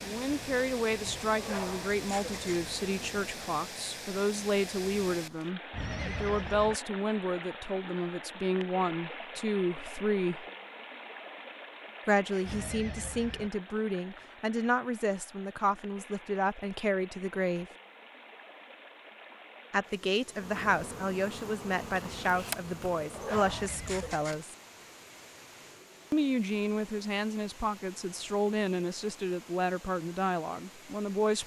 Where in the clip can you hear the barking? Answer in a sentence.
You can hear the barking from 1.4 to 2.6 s and from 23.1 to 24.4 s.